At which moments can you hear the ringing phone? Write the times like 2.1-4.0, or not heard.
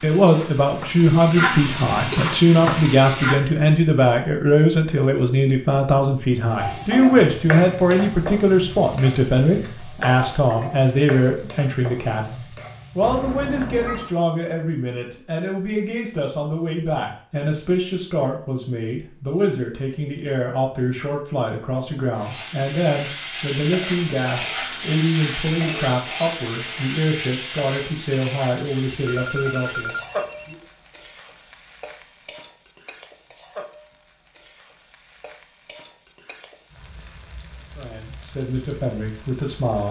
13.0-14.2, 28.9-30.6.